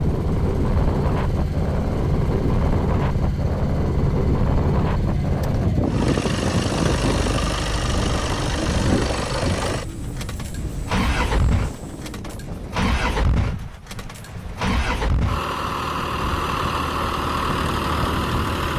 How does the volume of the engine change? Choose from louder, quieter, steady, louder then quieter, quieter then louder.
steady.